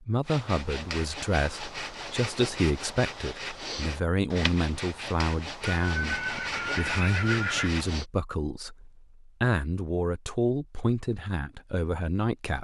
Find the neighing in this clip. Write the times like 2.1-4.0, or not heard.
5.8-7.8.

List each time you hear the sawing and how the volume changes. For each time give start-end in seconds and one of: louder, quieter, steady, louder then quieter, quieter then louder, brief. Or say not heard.
0.2-8.1 steady.